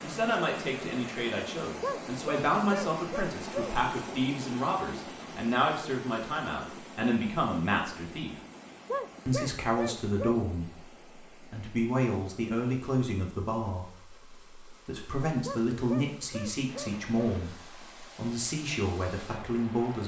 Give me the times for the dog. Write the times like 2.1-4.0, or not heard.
1.8-3.8, 8.8-10.4, 15.4-17.4.